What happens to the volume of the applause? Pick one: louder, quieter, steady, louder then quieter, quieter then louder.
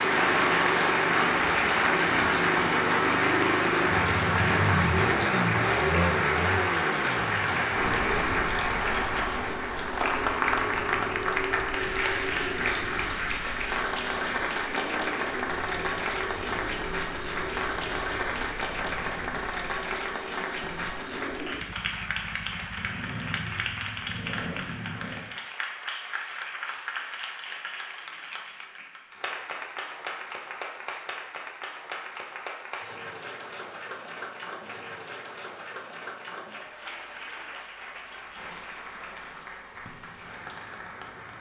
quieter.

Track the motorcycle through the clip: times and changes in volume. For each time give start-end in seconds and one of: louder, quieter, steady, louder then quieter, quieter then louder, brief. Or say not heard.
0.0-25.2 quieter.